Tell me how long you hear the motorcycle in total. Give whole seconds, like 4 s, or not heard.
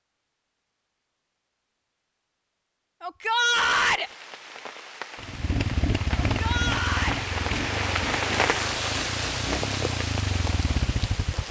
6 s.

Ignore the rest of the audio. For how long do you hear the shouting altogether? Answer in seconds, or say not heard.
2 s.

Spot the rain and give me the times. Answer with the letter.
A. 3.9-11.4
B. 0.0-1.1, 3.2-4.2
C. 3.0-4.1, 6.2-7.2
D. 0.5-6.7
A.